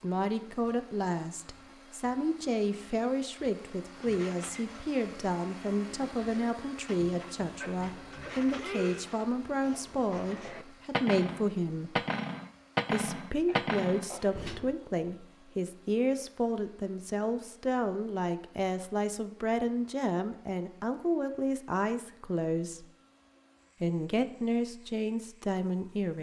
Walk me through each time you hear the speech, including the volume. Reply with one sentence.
You can hear the speech from 0.0 to 12.1 s, at a steady volume; from 12.9 to 22.9 s, at a steady volume; and briefly from 23.8 to 26.1 s.